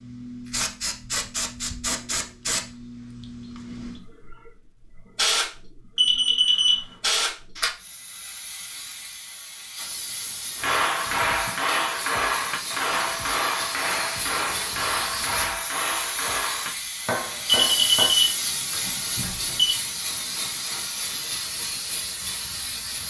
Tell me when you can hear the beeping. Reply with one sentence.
The beeping can be heard from 6.0 to 6.9 s and from 17.6 to 19.8 s.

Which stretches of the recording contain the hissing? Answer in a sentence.
You can hear the hissing from 0.0 to 23.0 s.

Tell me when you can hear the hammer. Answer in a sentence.
You can hear the hammer from 10.6 to 18.1 s.